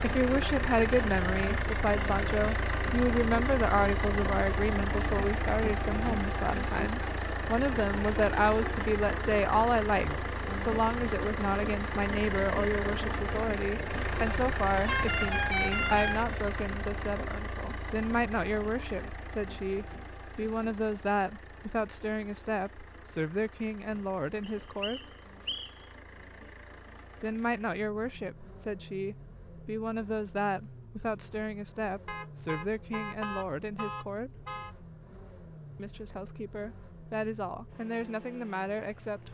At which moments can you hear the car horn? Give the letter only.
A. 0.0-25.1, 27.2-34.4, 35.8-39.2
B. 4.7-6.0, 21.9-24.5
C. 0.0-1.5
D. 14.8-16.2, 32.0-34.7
D.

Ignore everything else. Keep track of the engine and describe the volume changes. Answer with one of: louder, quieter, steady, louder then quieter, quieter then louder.
quieter.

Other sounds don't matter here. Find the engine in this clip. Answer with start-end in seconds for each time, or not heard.
0.0-39.2.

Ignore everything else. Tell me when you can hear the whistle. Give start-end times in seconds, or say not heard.
24.4-25.9.